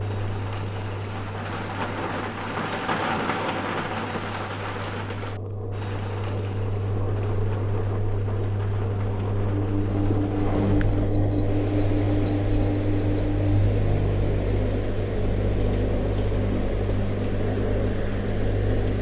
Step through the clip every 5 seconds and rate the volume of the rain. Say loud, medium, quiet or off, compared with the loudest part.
loud, medium, quiet, quiet.